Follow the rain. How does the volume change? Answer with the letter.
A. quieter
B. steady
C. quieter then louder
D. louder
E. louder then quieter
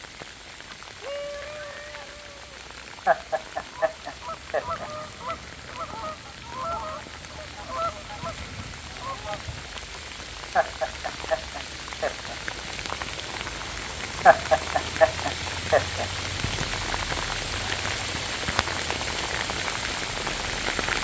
D.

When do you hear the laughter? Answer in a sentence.
You can hear the laughter from 3.0 to 4.9 s, from 10.6 to 12.3 s and from 14.2 to 16.1 s.